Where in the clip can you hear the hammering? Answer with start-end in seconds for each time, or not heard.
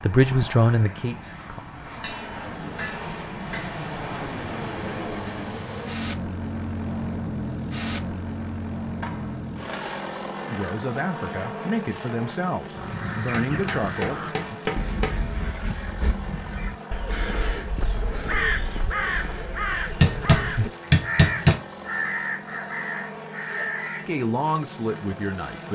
2.0-3.8, 9.0-10.4, 13.3-15.2, 20.0-21.6.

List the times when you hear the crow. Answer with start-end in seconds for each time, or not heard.
12.7-24.1.